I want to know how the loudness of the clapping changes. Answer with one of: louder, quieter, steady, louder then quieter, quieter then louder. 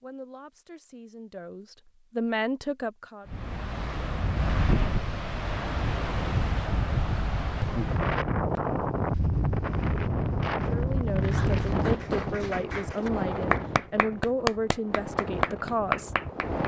louder.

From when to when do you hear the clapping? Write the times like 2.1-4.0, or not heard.
11.2-16.6.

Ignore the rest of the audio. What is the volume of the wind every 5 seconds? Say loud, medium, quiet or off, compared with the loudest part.
loud, loud, loud, medium.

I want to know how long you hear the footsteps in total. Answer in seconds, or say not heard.
not heard.